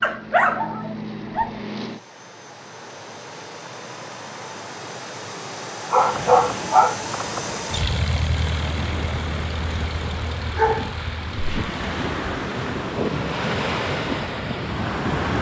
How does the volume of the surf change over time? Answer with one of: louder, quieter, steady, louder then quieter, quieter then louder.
louder.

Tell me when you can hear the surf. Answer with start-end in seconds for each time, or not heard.
6.0-15.3.